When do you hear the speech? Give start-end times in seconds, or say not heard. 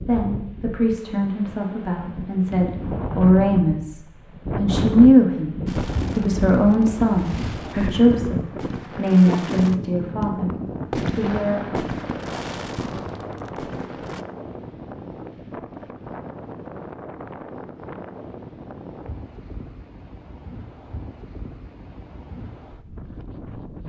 0.1-4.0, 4.6-10.5, 11.1-11.8.